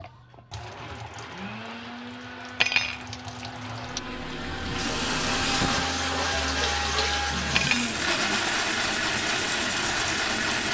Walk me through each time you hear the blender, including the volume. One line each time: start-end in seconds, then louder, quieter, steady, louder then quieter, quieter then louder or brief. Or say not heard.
0.0-10.7 louder.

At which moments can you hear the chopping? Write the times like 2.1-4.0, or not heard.
not heard.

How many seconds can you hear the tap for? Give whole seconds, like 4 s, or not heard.
11 s.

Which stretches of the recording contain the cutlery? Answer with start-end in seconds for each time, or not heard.
2.6-3.0, 7.5-8.0.